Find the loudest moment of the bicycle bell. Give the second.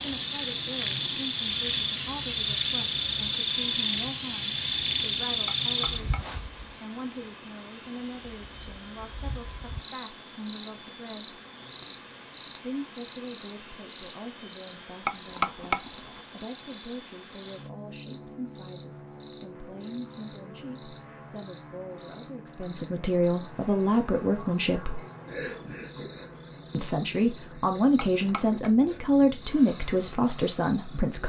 16 s.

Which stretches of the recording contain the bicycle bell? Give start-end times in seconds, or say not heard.
5.5-6.4, 15.1-16.2, 27.9-28.7.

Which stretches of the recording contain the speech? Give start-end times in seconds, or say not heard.
0.0-11.4, 12.6-25.0, 26.7-31.2.